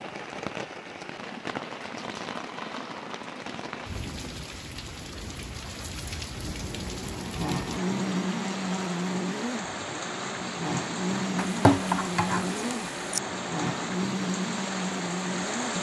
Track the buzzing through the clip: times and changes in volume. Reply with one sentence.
You can hear the buzzing from 6.6 to 15.7 s, at a steady volume.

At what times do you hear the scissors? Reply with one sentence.
You can hear the scissors from 11.3 to 13.2 s.